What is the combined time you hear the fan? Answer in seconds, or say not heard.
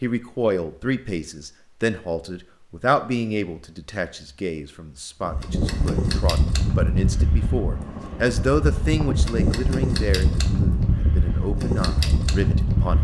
8 s.